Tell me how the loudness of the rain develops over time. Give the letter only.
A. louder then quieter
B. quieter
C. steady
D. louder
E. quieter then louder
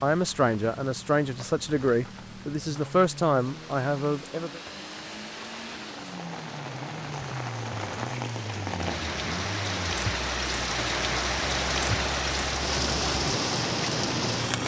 D.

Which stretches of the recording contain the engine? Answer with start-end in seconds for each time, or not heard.
0.0-14.6.